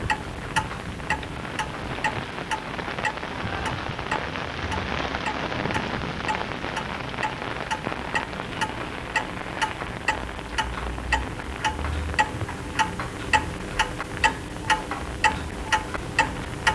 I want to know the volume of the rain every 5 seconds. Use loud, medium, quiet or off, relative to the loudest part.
loud, loud, medium, medium.